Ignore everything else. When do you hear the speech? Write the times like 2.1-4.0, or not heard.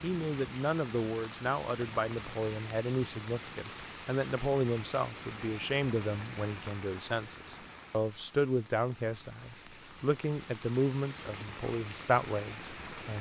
0.0-13.1.